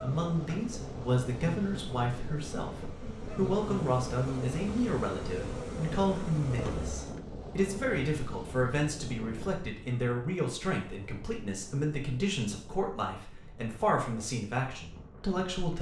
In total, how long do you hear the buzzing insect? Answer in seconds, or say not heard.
7 s.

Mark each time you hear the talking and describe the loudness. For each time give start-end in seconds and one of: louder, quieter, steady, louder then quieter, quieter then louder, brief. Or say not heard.
0.0-15.7 steady.